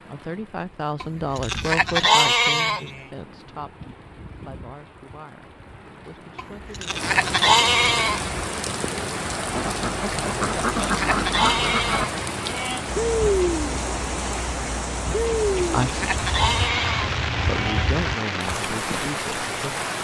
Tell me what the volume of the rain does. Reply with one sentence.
The volume of the rain goes up.